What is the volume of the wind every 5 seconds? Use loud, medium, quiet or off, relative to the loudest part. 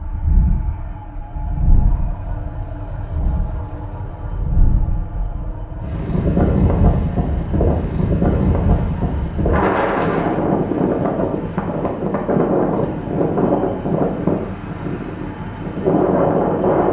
medium, loud, loud, loud.